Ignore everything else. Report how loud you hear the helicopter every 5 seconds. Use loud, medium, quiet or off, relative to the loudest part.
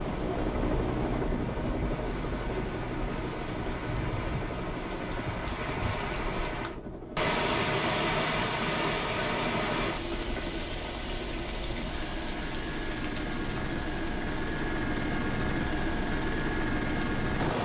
loud, medium, medium, loud.